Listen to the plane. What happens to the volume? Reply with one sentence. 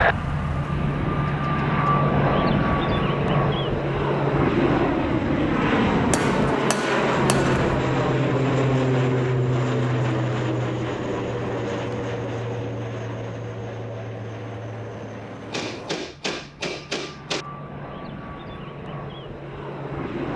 The loudness of the plane goes down.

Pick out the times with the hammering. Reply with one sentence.
The hammering can be heard from 6.1 to 7.8 s and from 15.5 to 17.4 s.